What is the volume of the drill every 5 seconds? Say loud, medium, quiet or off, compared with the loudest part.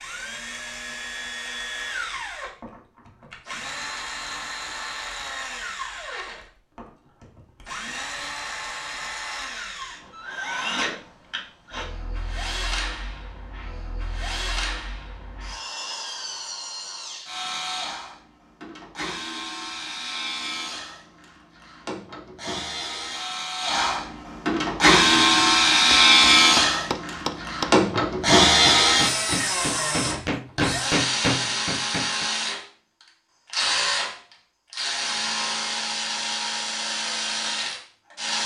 quiet, quiet, quiet, quiet, medium, loud, medium, medium.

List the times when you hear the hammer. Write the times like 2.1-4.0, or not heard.
24.6-32.2.